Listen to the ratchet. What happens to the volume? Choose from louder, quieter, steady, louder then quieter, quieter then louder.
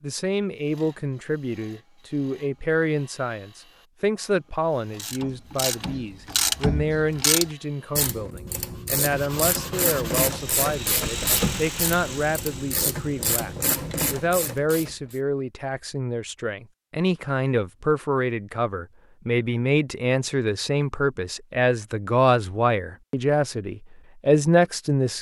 steady.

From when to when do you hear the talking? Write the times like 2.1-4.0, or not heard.
0.0-25.1.